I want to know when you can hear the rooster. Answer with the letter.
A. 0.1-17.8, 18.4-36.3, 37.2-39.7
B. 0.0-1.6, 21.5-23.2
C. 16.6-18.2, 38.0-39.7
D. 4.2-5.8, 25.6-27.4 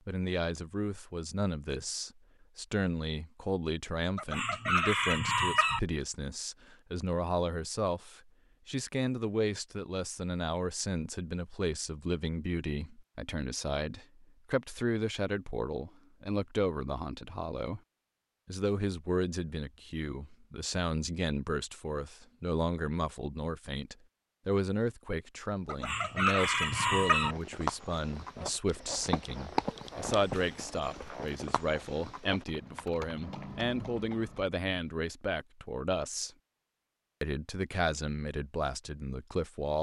D.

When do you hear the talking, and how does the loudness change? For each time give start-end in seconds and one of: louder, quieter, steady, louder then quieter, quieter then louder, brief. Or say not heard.
0.1-17.8 steady
18.4-36.3 steady
37.2-39.7 brief.